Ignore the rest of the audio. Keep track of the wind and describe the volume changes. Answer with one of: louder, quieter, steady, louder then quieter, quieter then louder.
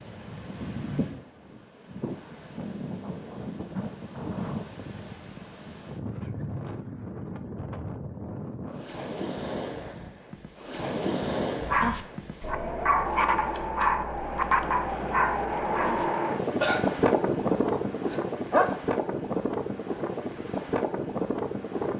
louder.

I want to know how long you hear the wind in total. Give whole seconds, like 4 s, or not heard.
22 s.